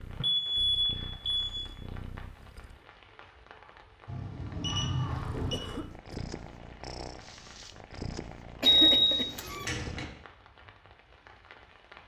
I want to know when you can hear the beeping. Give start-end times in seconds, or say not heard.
0.2-1.6, 4.0-5.6, 8.9-10.1.